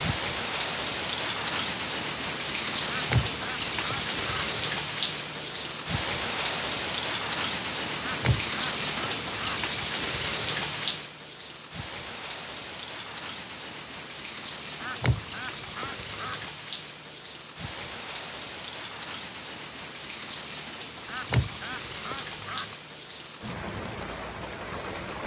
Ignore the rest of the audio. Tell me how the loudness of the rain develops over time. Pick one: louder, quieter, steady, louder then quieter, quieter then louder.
quieter.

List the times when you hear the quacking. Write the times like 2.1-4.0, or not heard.
2.9-4.5, 8.0-9.7, 14.8-16.4, 21.1-22.8.